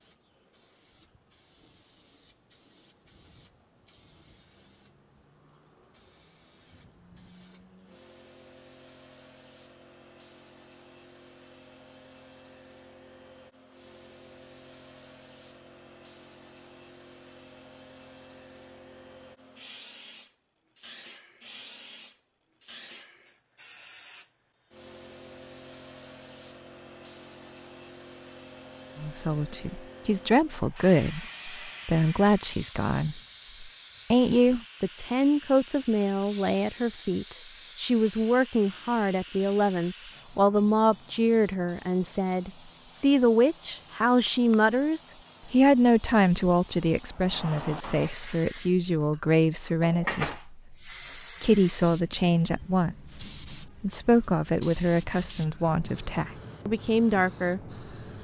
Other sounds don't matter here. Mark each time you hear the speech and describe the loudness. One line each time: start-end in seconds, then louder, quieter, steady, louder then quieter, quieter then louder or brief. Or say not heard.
28.9-57.6 steady.